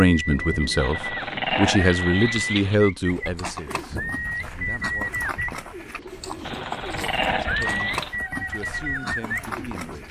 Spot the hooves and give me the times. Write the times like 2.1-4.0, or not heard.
3.0-10.0.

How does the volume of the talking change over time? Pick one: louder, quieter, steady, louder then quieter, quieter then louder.
quieter.